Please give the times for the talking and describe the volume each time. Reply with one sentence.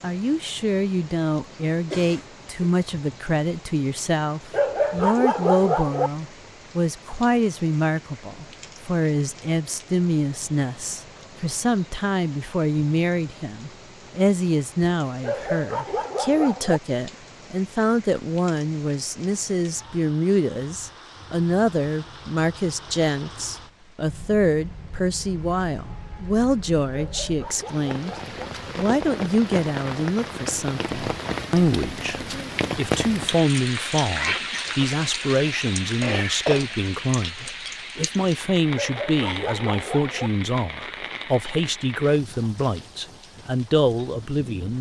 You can hear the talking from 0.0 to 44.7 s, at a steady volume.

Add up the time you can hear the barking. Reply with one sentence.
You can hear the barking for 6 seconds altogether.